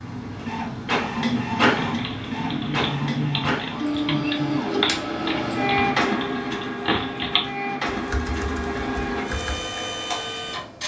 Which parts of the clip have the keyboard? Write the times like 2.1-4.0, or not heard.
1.8-9.6.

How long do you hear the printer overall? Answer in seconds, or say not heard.
11 s.